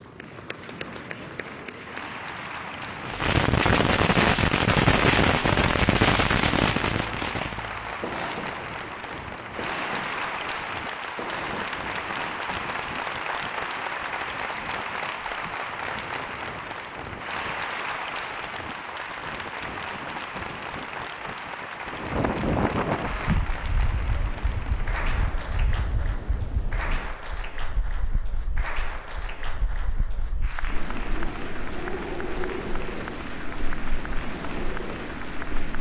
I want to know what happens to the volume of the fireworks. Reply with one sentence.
The volume of the fireworks goes down.